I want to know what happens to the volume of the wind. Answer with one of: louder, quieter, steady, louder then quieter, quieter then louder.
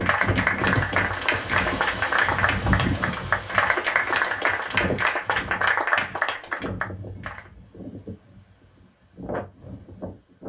quieter.